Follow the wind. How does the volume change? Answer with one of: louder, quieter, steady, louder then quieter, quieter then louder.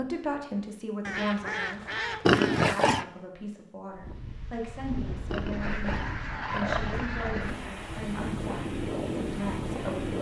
louder.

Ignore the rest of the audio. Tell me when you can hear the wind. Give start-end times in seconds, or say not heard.
3.9-10.1.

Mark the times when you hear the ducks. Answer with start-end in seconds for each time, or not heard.
1.0-3.0, 5.5-7.5.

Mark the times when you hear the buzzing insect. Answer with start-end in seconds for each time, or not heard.
not heard.